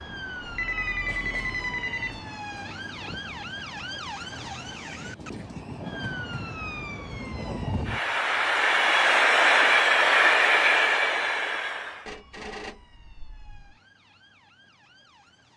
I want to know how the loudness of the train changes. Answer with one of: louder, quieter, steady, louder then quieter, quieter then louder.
louder.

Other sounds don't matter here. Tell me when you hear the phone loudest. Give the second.
1 s.